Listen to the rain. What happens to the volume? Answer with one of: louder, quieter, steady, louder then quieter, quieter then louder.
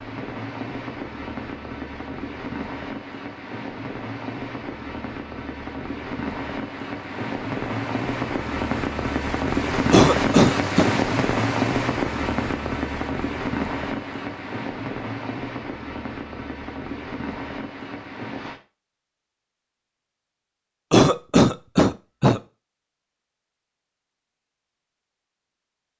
louder then quieter.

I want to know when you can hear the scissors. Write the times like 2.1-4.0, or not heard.
not heard.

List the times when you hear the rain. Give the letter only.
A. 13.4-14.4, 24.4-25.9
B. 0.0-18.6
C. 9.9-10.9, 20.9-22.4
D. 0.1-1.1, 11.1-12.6
B.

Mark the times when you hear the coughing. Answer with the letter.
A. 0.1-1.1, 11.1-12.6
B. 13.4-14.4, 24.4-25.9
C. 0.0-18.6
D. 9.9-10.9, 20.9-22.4
D.